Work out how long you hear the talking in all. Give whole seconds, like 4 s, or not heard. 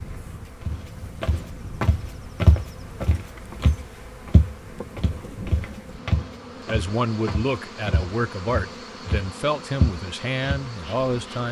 5 s.